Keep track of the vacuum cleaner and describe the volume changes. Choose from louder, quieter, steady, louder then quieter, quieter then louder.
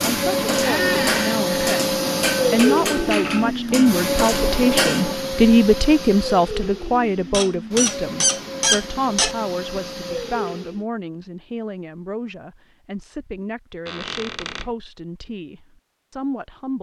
quieter.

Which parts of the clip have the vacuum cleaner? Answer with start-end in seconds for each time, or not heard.
0.0-10.8.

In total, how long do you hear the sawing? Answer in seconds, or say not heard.
not heard.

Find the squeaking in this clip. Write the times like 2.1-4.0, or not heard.
0.6-1.9, 7.3-9.3, 13.8-14.7.